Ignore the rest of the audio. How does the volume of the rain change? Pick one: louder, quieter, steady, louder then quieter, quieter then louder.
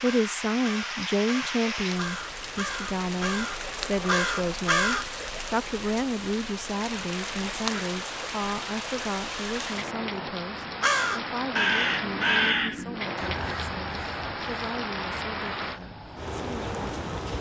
steady.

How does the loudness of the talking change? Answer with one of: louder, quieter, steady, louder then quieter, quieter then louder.
quieter.